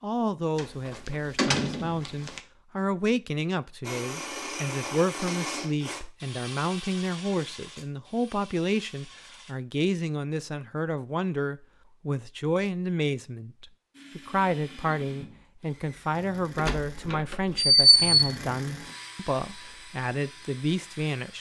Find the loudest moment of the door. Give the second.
18 s.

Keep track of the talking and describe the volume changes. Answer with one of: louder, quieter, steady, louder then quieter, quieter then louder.
steady.